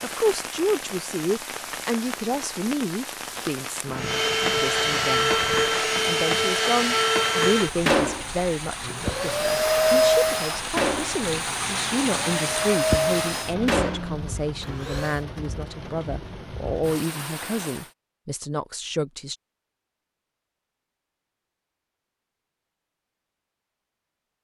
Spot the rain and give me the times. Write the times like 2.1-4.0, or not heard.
0.0-17.9.